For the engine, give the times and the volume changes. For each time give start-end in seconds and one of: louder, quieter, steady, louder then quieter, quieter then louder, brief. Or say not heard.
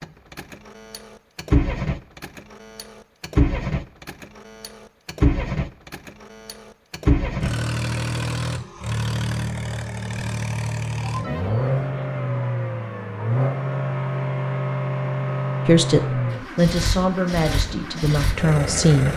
0.0-19.1 steady.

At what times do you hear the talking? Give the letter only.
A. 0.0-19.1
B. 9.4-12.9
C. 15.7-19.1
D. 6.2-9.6
C.